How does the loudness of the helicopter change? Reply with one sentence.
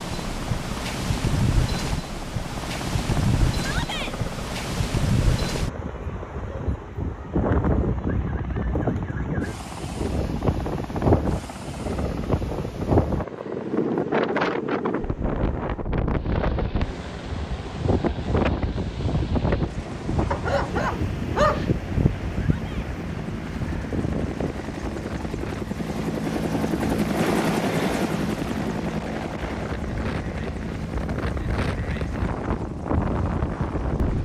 The volume of the helicopter goes up.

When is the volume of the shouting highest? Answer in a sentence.
The loudest moment of the shouting is at 4 seconds.